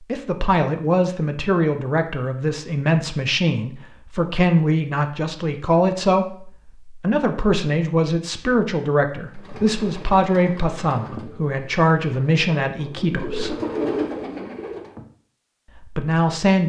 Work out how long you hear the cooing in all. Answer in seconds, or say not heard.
6 s.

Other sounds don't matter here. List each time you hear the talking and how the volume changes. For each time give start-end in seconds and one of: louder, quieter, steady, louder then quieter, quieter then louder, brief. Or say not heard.
0.1-13.6 steady
15.9-16.6 brief.